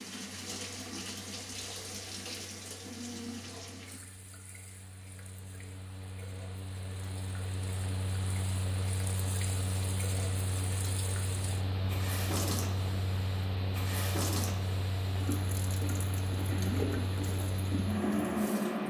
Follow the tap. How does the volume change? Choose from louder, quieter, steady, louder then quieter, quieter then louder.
quieter then louder.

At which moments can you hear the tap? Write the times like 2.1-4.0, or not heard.
0.0-18.8.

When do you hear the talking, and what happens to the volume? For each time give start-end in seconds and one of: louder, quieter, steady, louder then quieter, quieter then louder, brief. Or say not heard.
not heard.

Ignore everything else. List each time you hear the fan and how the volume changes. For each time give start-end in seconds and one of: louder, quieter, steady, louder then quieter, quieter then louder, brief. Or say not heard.
0.2-18.8 louder.